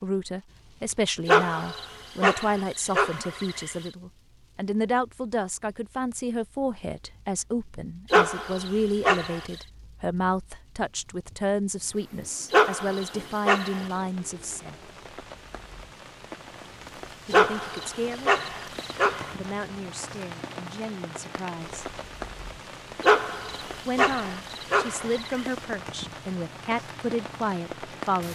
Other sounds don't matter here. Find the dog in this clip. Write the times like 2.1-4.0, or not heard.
1.2-3.8, 8.1-9.4, 12.5-13.8, 17.3-19.4, 23.0-25.4.